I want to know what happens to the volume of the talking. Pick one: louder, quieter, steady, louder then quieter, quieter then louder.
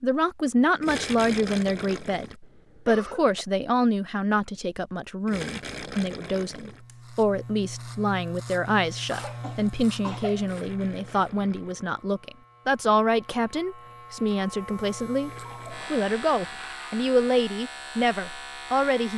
steady.